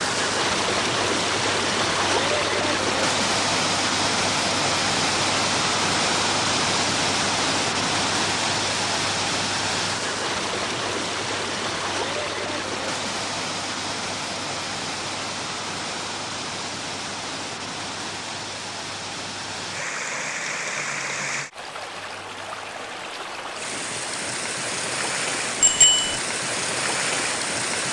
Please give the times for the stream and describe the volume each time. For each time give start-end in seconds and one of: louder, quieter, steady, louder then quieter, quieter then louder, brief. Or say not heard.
0.0-27.8 quieter.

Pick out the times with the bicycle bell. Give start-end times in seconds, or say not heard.
25.6-26.2.